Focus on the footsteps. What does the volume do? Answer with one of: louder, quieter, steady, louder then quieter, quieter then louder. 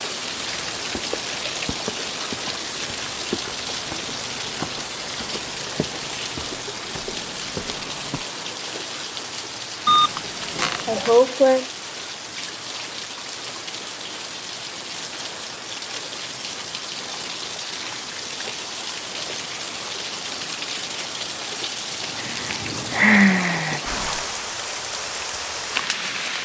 steady.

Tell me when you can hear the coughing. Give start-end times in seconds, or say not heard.
not heard.